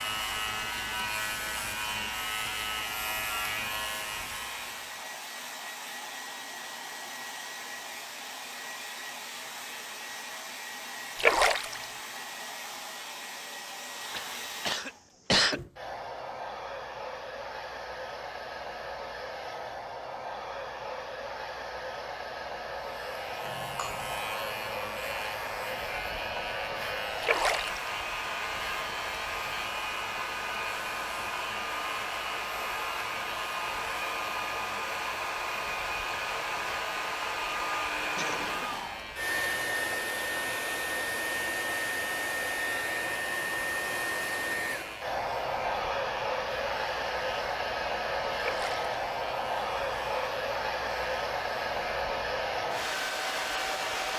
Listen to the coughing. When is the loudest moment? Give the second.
15 s.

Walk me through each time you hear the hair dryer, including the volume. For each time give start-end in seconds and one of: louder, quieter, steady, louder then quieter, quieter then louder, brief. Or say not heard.
0.0-54.1 louder.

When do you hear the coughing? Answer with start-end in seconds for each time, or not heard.
14.1-15.6, 23.4-24.2, 38.1-38.9.